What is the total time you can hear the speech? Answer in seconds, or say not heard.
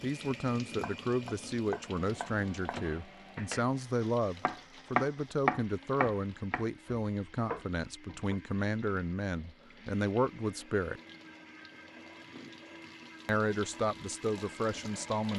13 s.